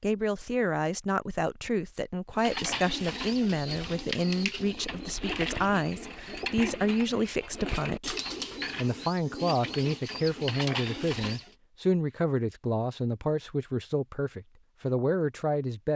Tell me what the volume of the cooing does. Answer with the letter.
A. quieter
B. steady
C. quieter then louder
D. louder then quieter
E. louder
B.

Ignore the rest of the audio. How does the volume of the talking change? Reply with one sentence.
The loudness of the talking stays about the same.